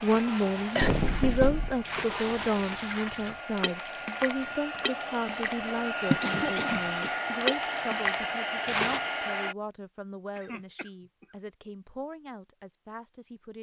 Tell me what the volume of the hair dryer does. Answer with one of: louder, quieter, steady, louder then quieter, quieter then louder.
louder.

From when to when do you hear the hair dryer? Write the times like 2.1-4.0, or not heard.
0.0-9.6.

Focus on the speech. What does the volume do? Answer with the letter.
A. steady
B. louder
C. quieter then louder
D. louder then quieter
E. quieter
E.